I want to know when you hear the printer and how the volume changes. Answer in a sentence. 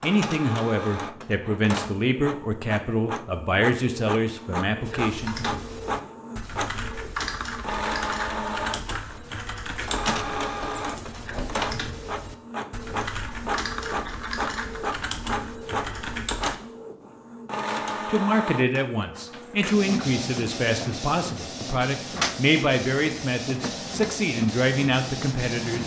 The printer can be heard from 0.0 to 25.8 s, at a steady volume.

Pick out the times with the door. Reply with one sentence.
You can hear the door from 10.5 to 11.7 s.